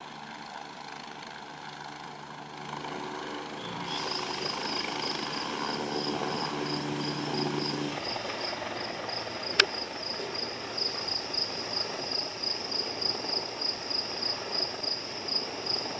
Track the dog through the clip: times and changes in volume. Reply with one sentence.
The dog can't be heard in this clip.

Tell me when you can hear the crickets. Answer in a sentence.
The crickets can be heard from 3.5 to 15.9 s.